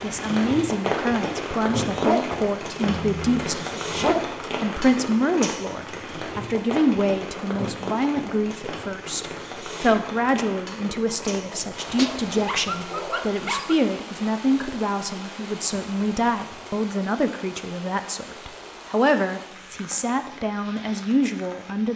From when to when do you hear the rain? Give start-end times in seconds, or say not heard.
0.0-21.9.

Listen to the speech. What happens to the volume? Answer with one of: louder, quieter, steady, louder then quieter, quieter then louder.
steady.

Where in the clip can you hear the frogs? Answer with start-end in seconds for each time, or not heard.
not heard.